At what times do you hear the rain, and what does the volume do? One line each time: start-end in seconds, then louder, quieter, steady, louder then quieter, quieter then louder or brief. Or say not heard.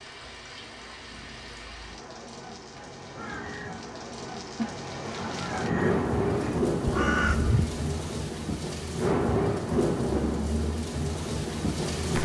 0.0-12.1 louder.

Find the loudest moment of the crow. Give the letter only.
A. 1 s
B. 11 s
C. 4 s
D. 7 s
D.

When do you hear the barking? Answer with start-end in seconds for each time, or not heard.
not heard.